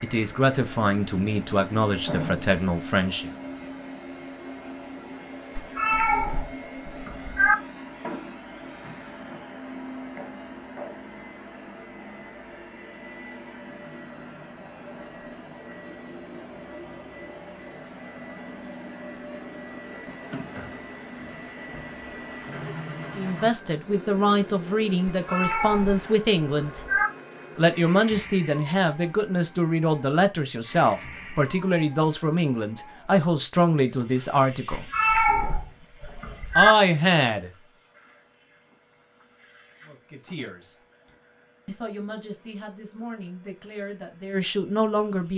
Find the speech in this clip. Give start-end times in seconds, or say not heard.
0.0-3.3, 23.1-26.8, 27.6-34.9, 36.5-37.5, 39.9-40.8, 41.6-45.3.